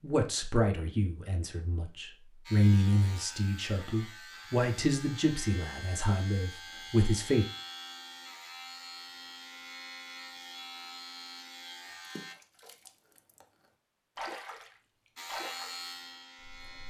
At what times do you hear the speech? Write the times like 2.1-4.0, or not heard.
0.0-7.5.